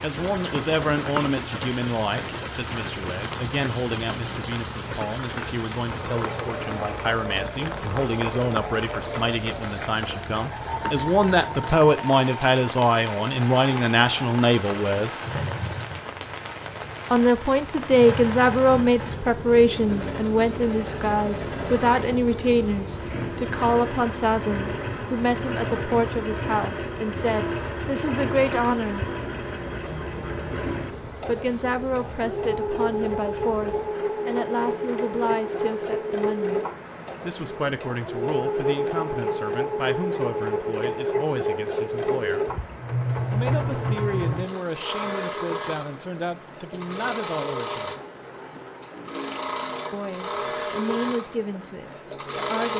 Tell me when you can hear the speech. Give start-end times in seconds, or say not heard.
0.0-15.2, 17.1-29.1, 31.2-42.4, 43.3-47.9, 49.9-52.7.